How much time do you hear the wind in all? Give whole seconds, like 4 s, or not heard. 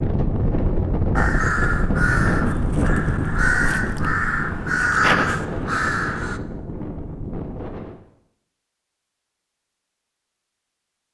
8 s.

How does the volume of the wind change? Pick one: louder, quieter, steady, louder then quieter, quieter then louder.
quieter.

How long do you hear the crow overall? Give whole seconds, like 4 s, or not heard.
5 s.